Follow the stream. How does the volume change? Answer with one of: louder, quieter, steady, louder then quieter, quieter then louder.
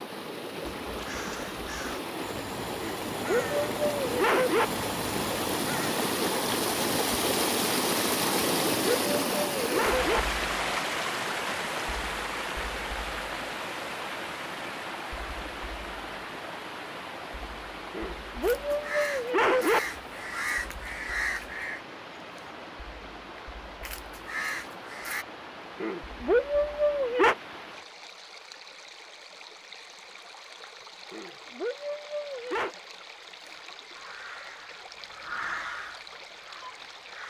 quieter.